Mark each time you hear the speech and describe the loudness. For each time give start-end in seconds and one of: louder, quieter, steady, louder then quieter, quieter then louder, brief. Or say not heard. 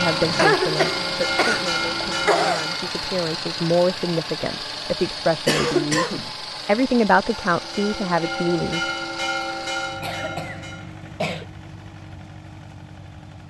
0.0-8.8 louder.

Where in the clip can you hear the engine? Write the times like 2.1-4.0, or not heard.
0.0-13.4.